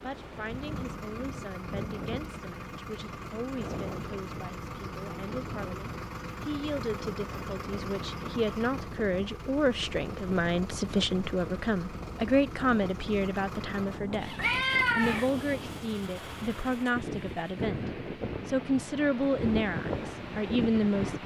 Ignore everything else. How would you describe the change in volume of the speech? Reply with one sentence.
The volume of the speech goes up.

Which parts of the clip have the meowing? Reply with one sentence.
The meowing can be heard from 14.3 to 15.3 s.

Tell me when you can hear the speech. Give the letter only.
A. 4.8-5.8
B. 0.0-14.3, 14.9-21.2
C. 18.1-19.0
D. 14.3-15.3
B.